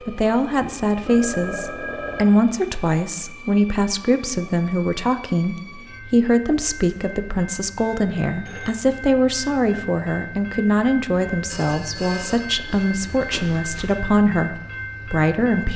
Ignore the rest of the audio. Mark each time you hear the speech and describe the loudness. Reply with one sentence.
The speech can be heard from 0.1 to 15.7 s, at a steady volume.